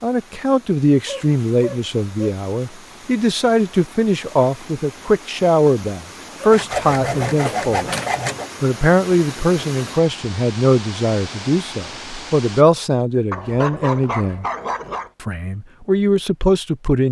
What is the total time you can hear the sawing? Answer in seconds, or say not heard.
2 s.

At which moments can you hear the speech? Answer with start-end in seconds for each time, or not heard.
0.0-7.9, 8.6-14.4, 15.2-17.0.